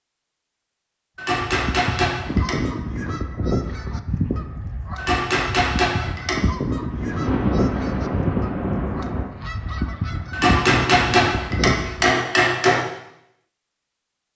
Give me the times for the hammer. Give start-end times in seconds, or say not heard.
1.1-2.6, 5.0-6.4, 10.3-12.8.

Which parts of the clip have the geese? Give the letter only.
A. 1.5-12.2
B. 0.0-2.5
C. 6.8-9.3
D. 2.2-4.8
A.